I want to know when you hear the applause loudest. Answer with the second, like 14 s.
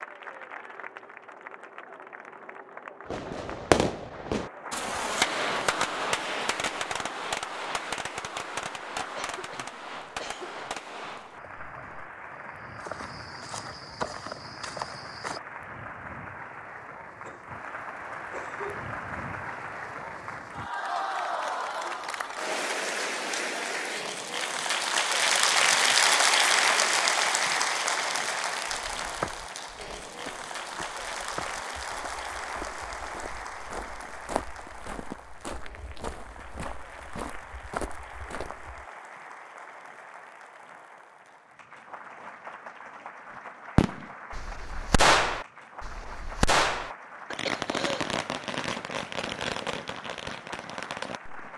26 s.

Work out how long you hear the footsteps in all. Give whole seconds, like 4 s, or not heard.
14 s.